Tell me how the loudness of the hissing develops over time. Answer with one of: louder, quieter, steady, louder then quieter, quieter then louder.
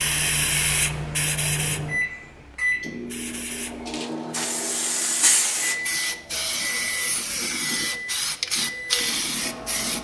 quieter then louder.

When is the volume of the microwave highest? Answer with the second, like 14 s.
2 s.